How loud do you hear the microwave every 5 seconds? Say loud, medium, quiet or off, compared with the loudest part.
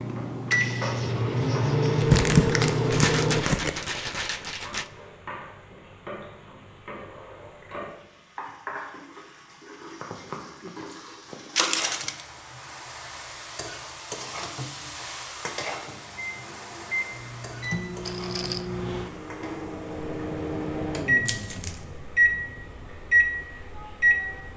loud, off, off, medium, loud.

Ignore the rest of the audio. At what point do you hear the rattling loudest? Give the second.
3 s.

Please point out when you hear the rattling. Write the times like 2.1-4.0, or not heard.
2.9-4.9, 18.1-18.6.